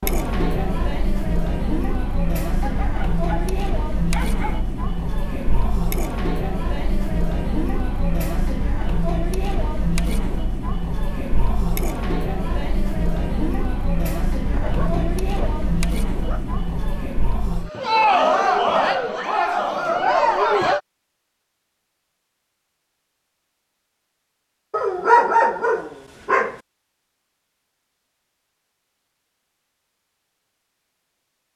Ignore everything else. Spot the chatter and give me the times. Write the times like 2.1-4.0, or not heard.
0.0-20.8.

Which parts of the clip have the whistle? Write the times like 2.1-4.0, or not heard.
not heard.